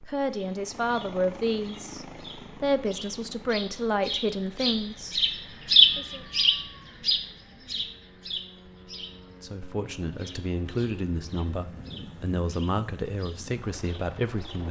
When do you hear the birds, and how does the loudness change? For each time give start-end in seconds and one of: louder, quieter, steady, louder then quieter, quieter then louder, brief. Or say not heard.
0.0-14.6 louder then quieter.